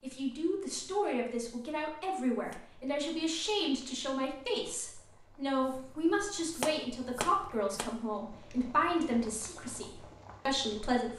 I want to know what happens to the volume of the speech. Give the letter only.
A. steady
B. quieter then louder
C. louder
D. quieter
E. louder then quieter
A.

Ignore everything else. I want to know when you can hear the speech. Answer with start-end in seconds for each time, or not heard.
0.0-11.1.